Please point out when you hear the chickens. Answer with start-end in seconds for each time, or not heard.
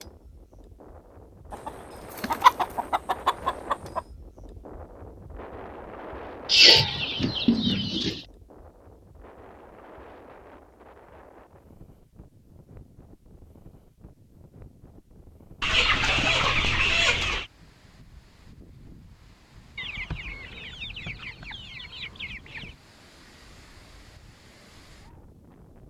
1.5-4.0, 6.5-8.2, 15.6-17.4, 19.8-22.8.